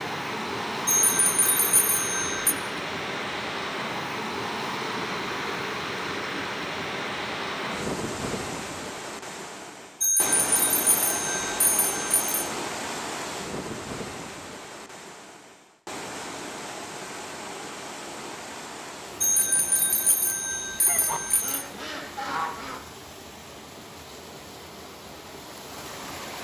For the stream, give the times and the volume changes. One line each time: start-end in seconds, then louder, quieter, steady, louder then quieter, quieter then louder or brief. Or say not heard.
0.0-26.3 quieter.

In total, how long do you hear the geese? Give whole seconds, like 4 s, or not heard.
2 s.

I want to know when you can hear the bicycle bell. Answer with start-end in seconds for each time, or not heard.
0.8-2.5, 10.0-12.3, 19.2-21.6.